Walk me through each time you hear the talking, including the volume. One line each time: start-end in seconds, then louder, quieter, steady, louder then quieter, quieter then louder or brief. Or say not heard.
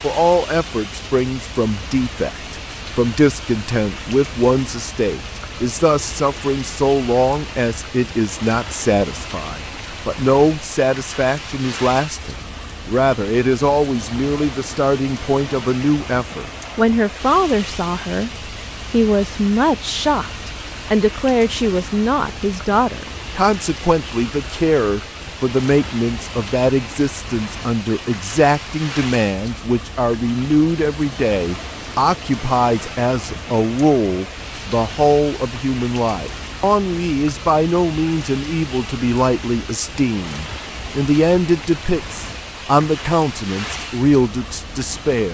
0.0-18.3 steady
18.9-45.2 steady.